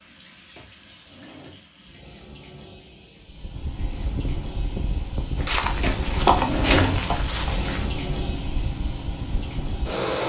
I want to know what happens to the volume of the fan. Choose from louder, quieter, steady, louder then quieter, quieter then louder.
steady.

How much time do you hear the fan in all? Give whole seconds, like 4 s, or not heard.
7 s.